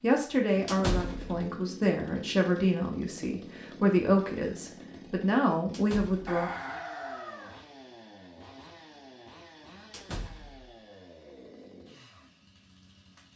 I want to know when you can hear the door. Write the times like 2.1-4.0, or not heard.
0.7-1.4, 5.7-6.4, 9.9-10.8.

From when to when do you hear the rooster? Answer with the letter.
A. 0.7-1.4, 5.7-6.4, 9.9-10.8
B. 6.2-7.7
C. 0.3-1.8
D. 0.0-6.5
B.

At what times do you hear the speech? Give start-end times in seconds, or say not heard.
0.0-6.5.